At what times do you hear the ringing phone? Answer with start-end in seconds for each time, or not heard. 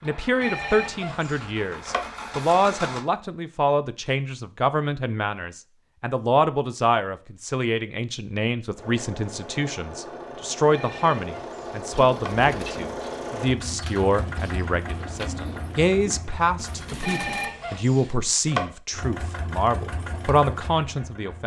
0.4-2.2, 10.7-12.4, 17.0-18.7.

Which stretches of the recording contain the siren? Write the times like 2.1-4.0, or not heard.
not heard.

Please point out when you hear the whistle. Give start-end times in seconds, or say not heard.
not heard.